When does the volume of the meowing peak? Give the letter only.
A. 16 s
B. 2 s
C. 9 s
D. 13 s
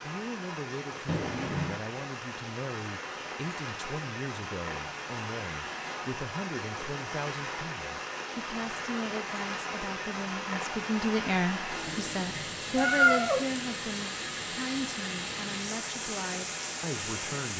D.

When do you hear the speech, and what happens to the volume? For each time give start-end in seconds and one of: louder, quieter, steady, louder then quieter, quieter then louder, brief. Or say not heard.
0.0-17.5 louder then quieter.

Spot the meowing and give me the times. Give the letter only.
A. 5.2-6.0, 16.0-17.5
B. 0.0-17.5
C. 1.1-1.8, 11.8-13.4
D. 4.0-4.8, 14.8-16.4
C.